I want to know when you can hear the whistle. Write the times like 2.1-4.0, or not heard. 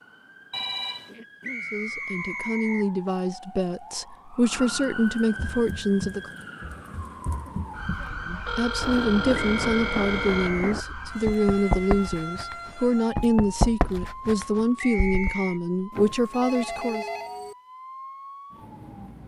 1.4-2.9, 9.3-10.8, 14.8-15.6.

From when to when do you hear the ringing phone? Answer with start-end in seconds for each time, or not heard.
0.5-1.1, 8.4-10.6, 15.9-17.6.